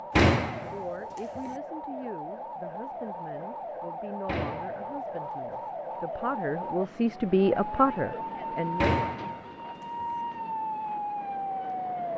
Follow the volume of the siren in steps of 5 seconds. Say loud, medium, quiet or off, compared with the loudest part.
medium, loud, loud.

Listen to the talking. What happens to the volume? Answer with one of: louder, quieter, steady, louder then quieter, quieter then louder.
louder.